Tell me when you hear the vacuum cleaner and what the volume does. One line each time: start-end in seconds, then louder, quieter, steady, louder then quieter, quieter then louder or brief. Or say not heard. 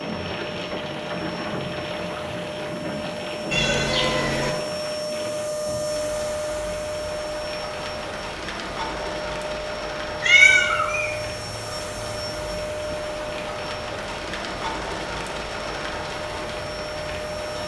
0.0-17.6 louder then quieter.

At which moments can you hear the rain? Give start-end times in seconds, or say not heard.
0.0-17.6.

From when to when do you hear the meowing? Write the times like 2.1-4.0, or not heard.
3.5-4.5, 10.2-11.1.